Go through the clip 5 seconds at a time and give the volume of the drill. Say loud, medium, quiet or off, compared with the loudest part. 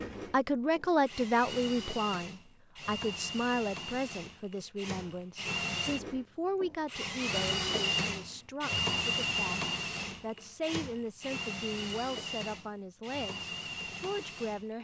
medium, loud, medium.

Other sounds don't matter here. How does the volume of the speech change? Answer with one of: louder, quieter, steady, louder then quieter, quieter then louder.
quieter.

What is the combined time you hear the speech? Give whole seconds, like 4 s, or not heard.
14 s.